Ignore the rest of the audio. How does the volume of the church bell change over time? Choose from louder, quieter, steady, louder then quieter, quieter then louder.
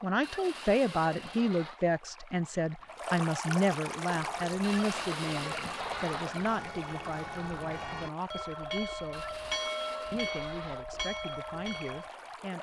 louder.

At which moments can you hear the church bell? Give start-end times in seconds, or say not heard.
4.1-12.1.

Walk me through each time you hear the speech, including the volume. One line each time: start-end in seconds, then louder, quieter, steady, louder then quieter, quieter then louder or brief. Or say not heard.
0.0-9.3 quieter
10.1-12.5 brief.